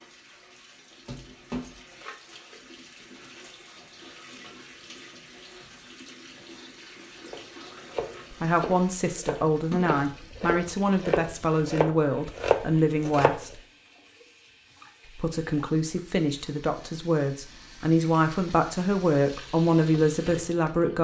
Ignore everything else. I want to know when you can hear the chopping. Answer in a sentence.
You can hear the chopping from 7.2 to 13.4 s.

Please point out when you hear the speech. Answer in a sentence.
You can hear the speech from 8.4 to 13.6 s and from 15.2 to 20.9 s.